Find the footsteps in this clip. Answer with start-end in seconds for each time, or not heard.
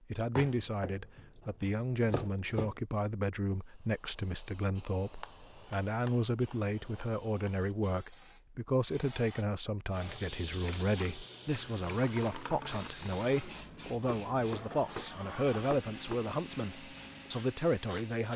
not heard.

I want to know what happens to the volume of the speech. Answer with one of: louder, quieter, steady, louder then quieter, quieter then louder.
steady.